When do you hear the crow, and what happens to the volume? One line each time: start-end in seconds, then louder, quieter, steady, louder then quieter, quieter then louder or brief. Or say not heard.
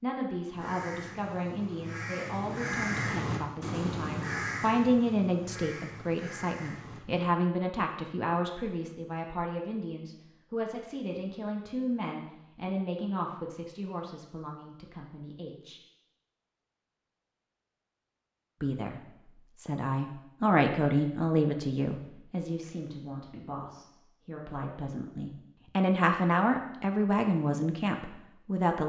0.5-7.0 louder then quieter.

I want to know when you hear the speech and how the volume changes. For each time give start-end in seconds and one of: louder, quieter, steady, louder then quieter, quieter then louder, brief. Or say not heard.
0.0-15.8 louder then quieter
18.6-28.8 quieter then louder.